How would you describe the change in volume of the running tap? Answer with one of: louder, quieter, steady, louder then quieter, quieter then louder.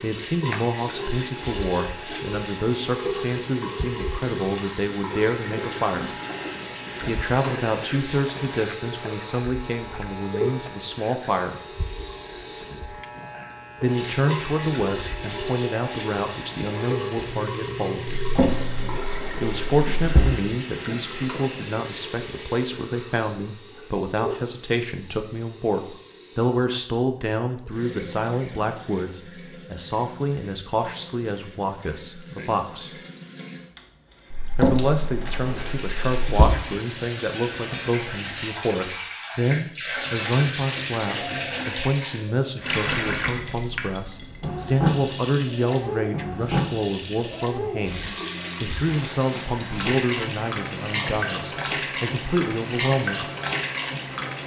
quieter then louder.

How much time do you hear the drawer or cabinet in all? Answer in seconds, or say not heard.
4 s.